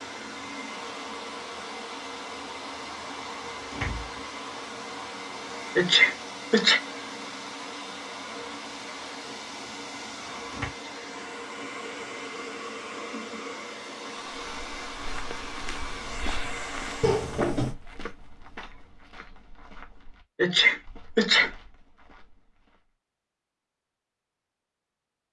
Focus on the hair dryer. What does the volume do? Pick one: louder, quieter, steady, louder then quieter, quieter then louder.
steady.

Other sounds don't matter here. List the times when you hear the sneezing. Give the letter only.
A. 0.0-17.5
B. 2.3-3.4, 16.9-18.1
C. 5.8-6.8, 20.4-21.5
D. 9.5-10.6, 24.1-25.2
C.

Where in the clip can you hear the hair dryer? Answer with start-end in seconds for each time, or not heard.
0.0-17.5.